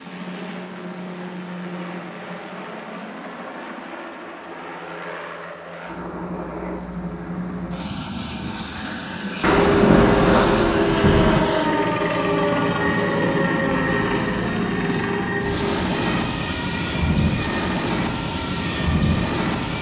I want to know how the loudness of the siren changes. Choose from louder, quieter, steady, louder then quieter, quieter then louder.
quieter.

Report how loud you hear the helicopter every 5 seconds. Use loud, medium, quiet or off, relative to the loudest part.
medium, medium, loud, loud.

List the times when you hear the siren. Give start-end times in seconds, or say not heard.
9.7-19.7.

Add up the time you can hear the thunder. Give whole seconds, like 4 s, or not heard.
2 s.